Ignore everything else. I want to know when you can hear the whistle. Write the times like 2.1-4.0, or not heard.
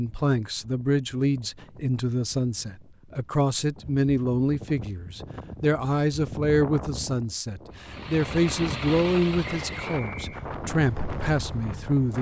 9.4-10.4.